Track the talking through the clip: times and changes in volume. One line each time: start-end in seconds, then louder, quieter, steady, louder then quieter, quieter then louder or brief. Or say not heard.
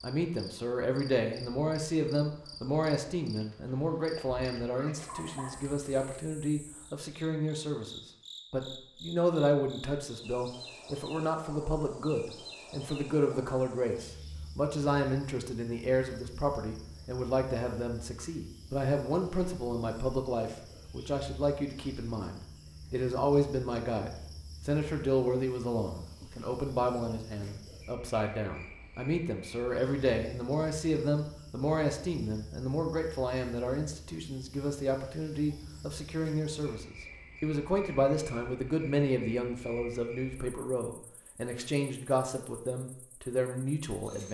0.0-44.3 steady.